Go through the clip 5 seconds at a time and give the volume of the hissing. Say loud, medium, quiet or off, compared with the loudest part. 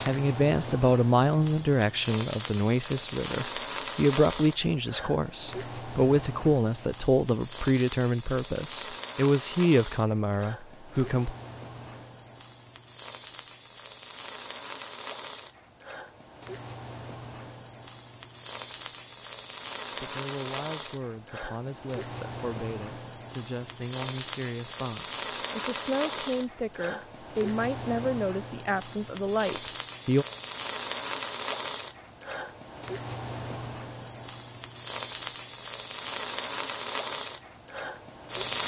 loud, medium, medium, medium, medium, loud, loud, loud.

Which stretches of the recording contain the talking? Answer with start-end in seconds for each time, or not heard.
0.0-11.3, 20.0-30.2.